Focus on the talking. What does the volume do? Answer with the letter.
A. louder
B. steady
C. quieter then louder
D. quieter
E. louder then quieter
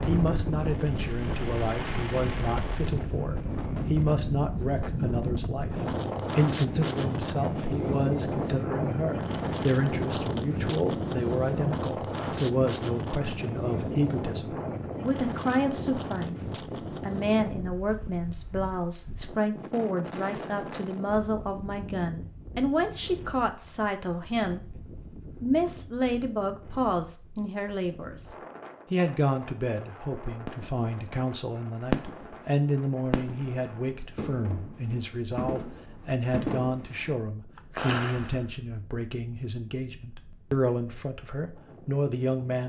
B.